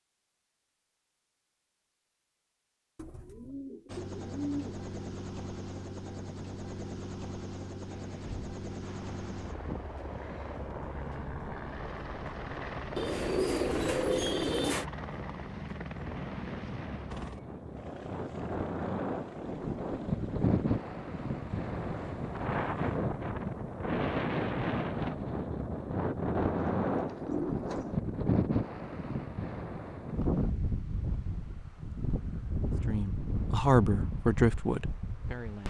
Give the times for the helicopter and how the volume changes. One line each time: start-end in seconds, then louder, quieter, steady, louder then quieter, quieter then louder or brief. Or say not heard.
3.9-23.0 quieter.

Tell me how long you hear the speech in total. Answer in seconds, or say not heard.
3 s.